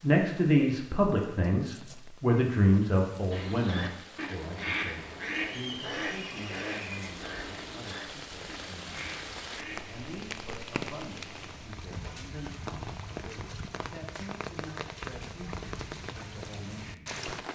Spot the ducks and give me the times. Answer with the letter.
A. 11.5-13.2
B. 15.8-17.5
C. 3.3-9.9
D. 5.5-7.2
C.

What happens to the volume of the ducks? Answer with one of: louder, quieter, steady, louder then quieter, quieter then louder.
quieter.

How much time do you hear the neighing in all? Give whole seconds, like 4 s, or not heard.
2 s.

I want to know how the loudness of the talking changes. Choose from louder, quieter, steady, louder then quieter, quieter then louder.
quieter.